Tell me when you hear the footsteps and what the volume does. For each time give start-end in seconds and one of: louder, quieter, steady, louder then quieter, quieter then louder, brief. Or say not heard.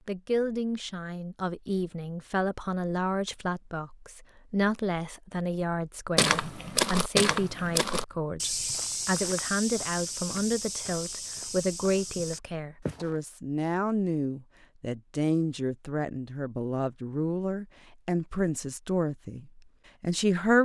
6.2-13.2 quieter.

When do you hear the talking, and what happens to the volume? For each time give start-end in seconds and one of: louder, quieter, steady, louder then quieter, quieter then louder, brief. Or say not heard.
0.1-20.6 steady.